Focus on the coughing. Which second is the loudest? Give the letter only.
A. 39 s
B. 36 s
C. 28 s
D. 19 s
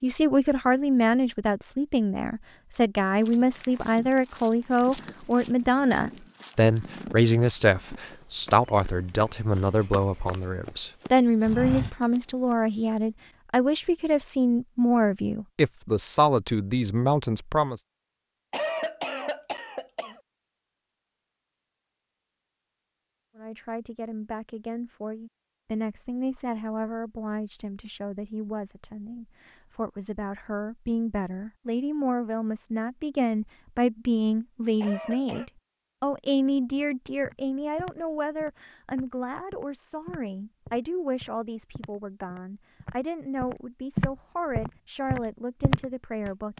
D.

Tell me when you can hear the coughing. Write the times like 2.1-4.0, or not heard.
18.5-20.2, 34.8-35.5.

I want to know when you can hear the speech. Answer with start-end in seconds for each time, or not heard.
0.0-17.8, 23.4-46.5.